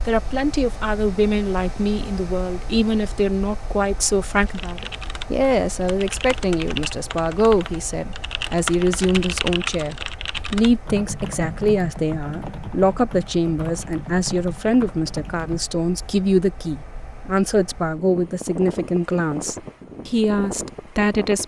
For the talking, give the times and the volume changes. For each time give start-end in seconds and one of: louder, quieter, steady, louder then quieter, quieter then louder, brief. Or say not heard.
0.1-21.4 steady.